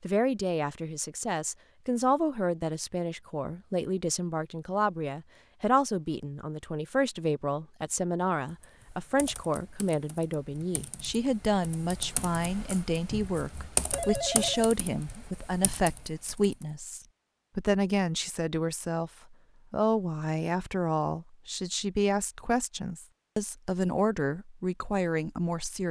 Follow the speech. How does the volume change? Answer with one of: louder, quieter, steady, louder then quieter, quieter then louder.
steady.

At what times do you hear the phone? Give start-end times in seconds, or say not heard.
13.9-14.7.